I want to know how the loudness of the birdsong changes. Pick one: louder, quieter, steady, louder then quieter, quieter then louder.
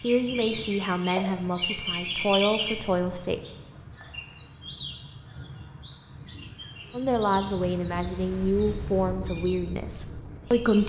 quieter.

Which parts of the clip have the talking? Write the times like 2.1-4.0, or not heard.
0.0-3.4, 6.9-10.8.